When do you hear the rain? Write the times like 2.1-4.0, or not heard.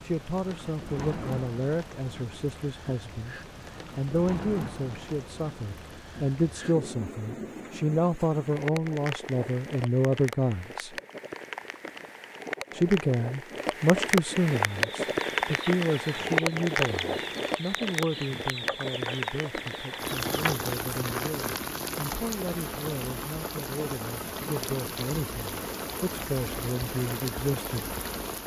0.0-28.4.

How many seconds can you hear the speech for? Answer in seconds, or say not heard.
26 s.